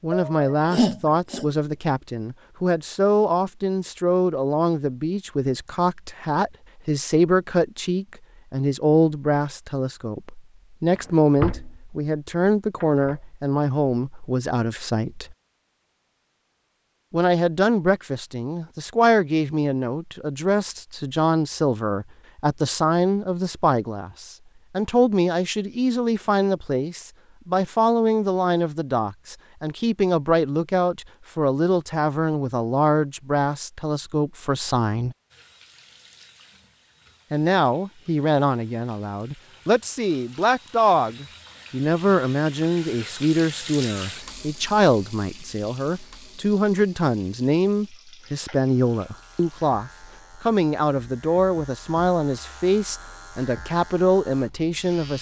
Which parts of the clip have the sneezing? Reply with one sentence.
The sneezing can be heard from 0.1 to 1.4 s.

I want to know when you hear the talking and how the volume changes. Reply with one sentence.
You can hear the talking from 0.0 to 15.3 s, at a steady volume; from 17.1 to 35.1 s, at a steady volume; and from 37.3 to 55.1 s, at a steady volume.